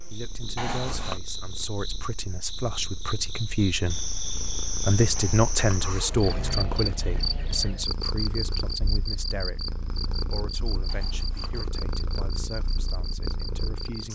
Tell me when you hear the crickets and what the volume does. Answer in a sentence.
You can hear the crickets from 0.0 to 14.1 s, getting louder then quieter.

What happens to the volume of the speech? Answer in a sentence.
The volume of the speech goes up, then down.